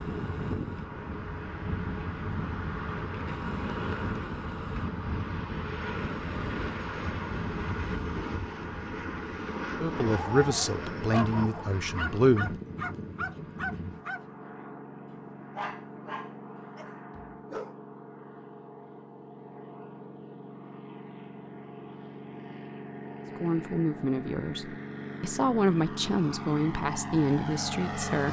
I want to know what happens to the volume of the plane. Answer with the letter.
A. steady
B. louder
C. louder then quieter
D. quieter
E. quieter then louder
E.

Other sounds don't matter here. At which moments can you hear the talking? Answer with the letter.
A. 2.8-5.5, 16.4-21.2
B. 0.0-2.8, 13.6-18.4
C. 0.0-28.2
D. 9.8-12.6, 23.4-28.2
D.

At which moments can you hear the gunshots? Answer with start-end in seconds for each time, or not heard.
not heard.